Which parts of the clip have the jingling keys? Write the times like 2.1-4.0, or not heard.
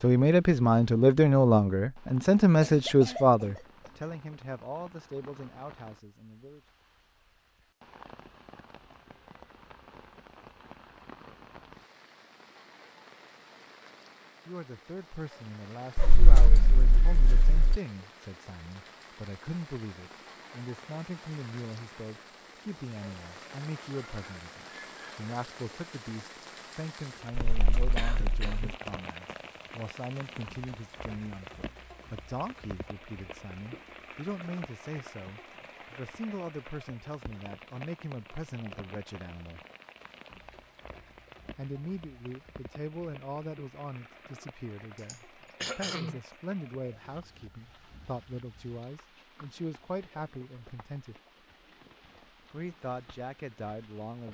15.9-17.8, 27.3-28.6.